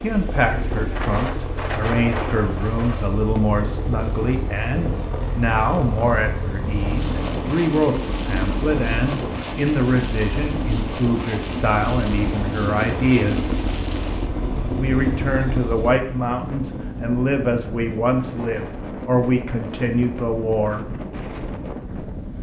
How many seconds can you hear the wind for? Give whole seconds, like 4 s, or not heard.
22 s.